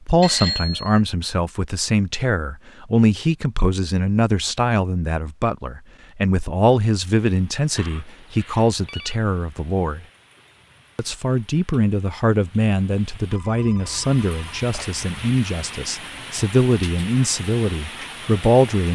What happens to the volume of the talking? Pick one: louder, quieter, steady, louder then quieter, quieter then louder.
steady.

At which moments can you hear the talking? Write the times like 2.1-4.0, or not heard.
0.1-10.1, 10.9-18.9.